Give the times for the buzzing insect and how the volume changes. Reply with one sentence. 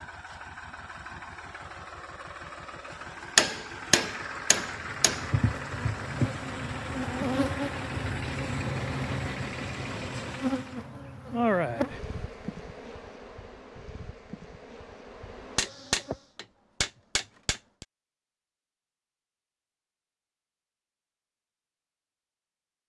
The buzzing insect can be heard from 4.8 to 16.2 s, getting quieter.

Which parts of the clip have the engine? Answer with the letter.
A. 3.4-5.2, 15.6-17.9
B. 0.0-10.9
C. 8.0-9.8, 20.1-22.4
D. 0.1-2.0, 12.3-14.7
B.